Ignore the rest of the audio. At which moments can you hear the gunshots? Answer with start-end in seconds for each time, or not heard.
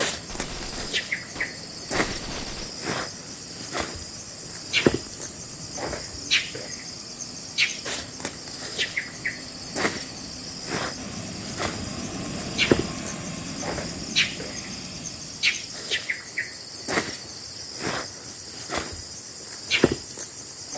0.1-2.8.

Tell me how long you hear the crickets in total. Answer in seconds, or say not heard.
21 s.